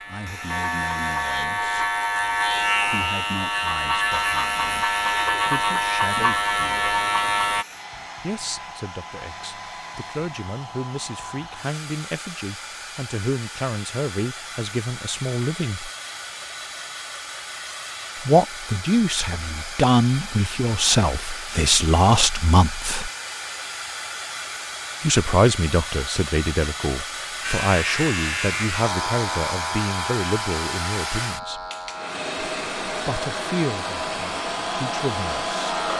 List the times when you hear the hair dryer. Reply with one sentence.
The hair dryer can be heard from 0.2 to 35.9 s.